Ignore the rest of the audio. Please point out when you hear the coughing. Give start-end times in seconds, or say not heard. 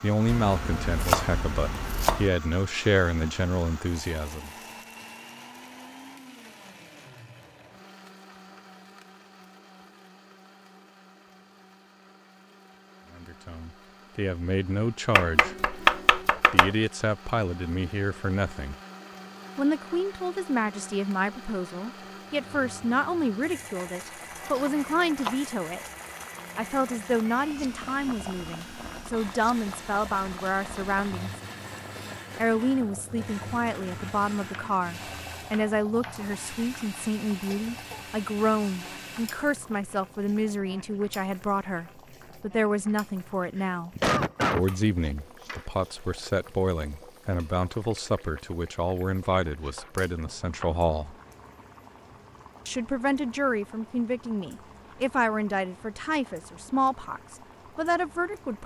43.6-44.6.